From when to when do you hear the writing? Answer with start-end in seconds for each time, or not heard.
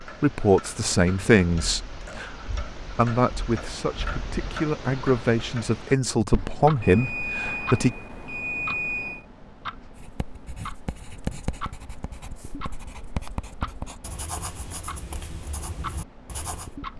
9.9-16.7.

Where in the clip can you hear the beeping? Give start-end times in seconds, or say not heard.
6.8-9.2.